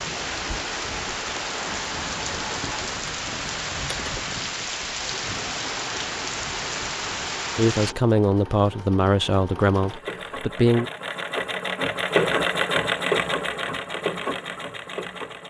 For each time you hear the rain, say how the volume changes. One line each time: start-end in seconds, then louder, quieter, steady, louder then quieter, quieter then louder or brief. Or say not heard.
0.0-8.0 steady.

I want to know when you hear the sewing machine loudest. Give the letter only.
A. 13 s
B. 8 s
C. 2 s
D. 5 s
A.